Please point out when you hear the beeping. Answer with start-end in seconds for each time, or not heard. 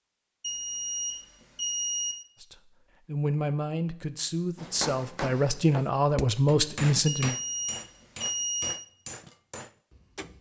0.4-2.1, 7.0-8.8.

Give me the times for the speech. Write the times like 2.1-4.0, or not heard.
2.4-7.3.